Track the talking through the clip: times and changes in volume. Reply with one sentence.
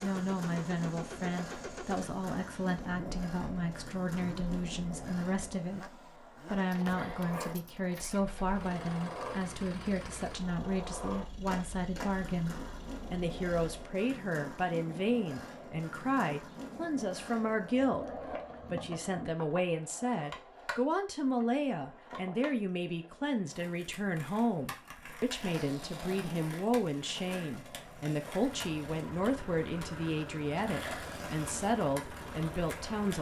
You can hear the talking from 0.0 to 18.1 s, at a steady volume; and from 18.7 to 33.1 s, at a steady volume.